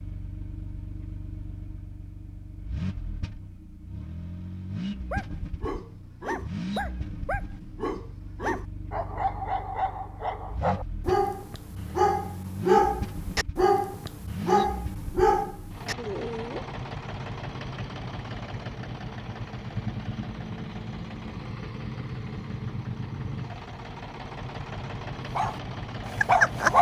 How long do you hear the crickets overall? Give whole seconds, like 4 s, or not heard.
not heard.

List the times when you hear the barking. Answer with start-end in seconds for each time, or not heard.
5.0-16.6, 25.4-26.7.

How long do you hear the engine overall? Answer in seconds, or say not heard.
27 s.